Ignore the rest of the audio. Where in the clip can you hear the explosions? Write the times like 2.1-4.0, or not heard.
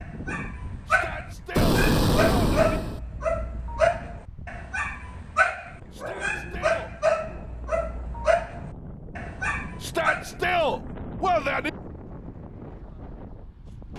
1.6-3.0.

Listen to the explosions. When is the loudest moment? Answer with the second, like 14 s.
2 s.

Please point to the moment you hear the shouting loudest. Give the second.
11 s.